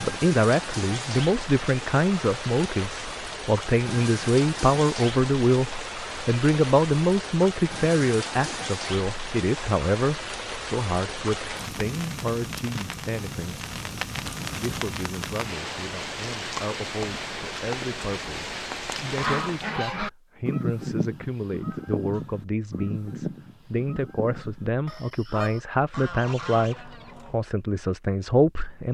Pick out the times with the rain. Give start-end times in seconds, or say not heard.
0.0-19.8.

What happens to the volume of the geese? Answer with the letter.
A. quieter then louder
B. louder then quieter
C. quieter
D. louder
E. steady
C.